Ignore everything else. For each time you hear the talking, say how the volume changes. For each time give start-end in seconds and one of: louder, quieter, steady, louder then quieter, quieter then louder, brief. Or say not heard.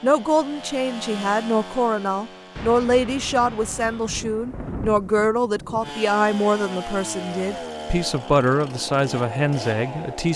0.0-10.3 steady.